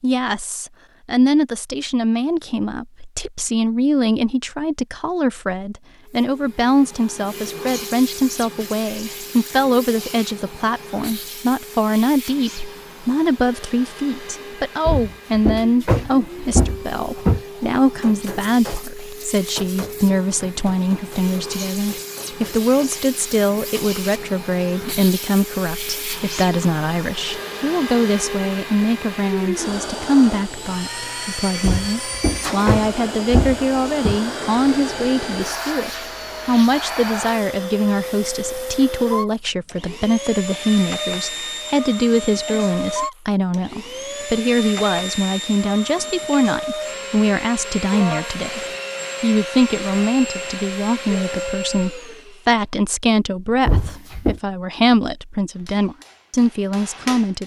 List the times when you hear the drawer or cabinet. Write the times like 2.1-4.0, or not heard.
14.8-17.4, 31.6-34.2, 53.6-54.4.